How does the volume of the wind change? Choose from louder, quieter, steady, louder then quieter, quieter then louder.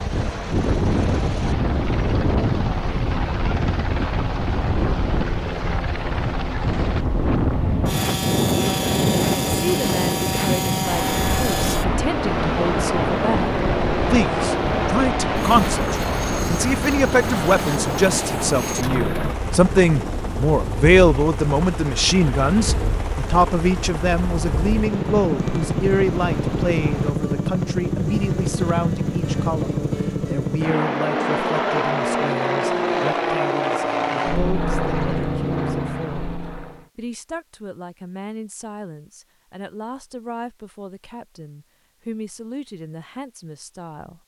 quieter.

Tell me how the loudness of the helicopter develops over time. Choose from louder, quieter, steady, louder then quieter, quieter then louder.
louder.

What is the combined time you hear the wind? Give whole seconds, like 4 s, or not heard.
27 s.